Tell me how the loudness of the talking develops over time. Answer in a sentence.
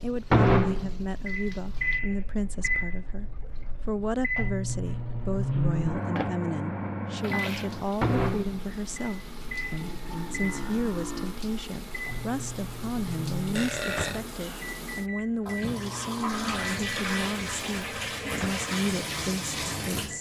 The loudness of the talking stays about the same.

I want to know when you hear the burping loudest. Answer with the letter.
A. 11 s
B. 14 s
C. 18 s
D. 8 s
B.